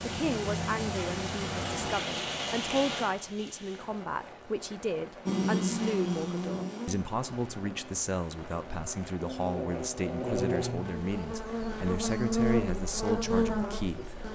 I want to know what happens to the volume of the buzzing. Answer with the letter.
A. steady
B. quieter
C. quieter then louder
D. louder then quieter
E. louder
C.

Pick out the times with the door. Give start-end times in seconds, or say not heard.
not heard.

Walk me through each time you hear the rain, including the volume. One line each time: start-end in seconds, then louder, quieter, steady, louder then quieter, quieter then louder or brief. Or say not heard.
0.0-14.2 quieter.